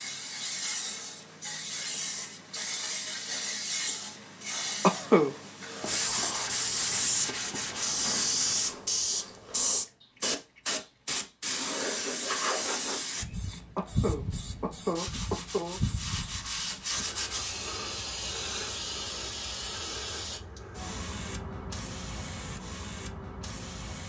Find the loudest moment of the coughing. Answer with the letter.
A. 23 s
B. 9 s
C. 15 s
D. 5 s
D.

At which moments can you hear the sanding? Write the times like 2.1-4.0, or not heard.
5.8-8.8, 14.9-17.6.